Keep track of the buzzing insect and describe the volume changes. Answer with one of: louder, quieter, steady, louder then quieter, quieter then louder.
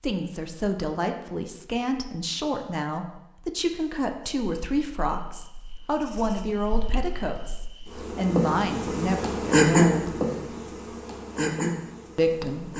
louder then quieter.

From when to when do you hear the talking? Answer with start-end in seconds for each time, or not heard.
0.0-10.2, 12.2-12.7.